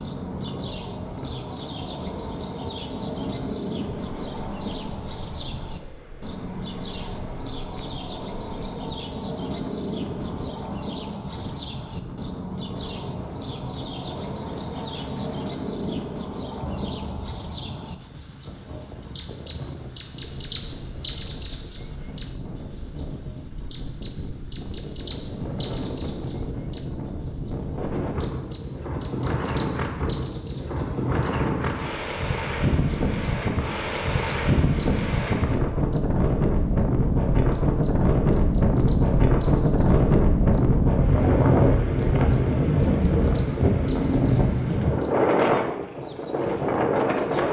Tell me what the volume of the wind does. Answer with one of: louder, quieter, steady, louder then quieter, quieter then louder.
louder.